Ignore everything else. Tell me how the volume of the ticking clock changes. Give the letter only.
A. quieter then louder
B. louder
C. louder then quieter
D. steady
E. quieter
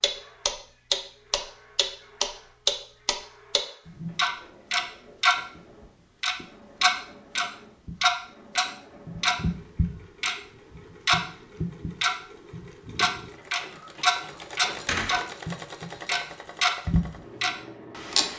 D.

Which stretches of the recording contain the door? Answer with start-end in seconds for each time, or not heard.
14.3-15.2.